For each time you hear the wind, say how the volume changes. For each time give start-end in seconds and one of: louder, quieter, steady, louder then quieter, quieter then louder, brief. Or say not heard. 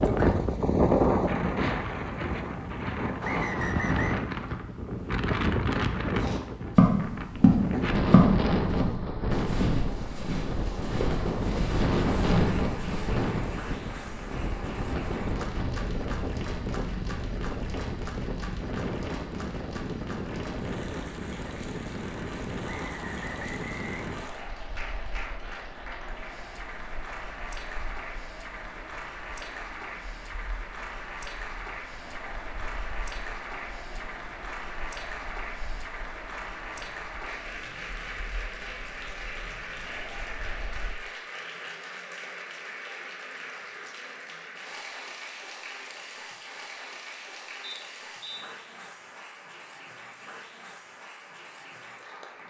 0.0-41.0 quieter.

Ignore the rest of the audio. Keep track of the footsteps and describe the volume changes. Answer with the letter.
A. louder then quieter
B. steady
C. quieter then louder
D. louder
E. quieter
E.